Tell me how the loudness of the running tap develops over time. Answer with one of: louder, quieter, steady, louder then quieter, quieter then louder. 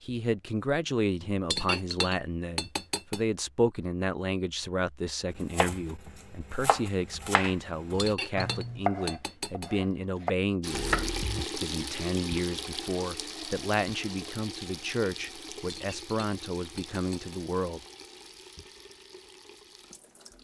quieter.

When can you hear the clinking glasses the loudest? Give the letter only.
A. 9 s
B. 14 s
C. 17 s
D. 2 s
D.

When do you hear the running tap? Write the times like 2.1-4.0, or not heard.
10.6-20.3.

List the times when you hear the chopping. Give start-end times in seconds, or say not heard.
5.4-11.4.